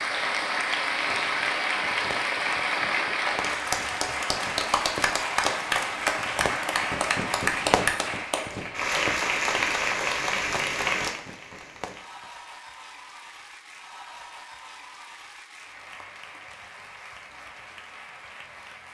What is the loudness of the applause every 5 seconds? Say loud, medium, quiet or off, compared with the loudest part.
loud, loud, medium, quiet.